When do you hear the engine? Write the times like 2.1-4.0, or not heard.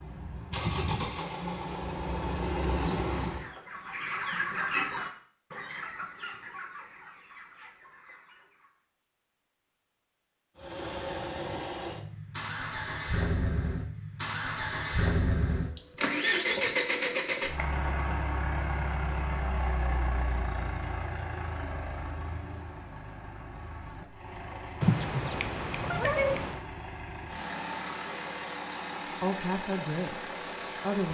0.0-3.5, 10.6-31.0.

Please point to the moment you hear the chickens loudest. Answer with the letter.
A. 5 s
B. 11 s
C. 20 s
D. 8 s
A.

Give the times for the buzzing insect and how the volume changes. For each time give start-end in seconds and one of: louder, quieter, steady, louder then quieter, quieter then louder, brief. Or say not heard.
not heard.